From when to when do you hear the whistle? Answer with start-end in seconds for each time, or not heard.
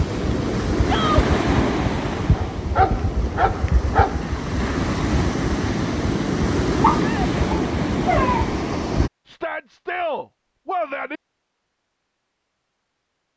not heard.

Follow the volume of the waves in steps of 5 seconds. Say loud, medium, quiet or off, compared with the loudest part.
loud, loud, off.